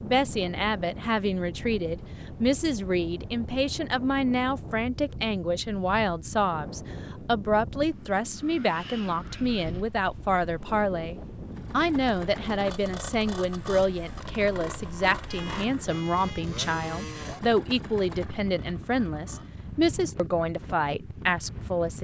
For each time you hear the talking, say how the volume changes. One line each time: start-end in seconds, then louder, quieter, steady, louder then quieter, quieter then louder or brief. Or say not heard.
0.0-21.9 steady.